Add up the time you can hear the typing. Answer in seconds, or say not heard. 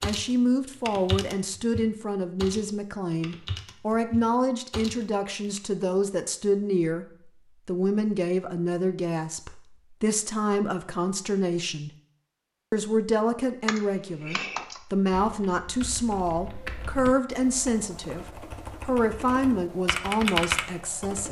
13 s.